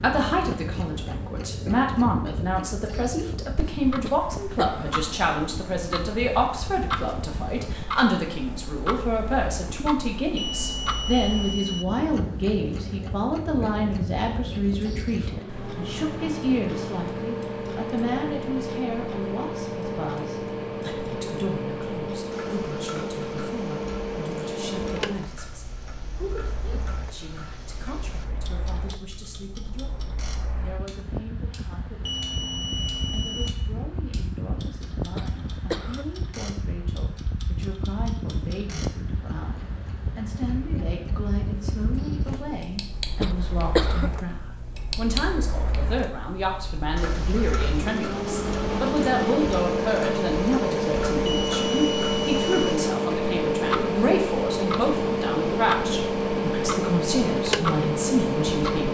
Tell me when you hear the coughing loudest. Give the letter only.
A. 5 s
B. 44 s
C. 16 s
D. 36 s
B.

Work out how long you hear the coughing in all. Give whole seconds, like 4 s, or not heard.
3 s.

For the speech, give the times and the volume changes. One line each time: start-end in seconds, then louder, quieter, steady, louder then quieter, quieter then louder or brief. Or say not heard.
0.0-58.8 quieter then louder.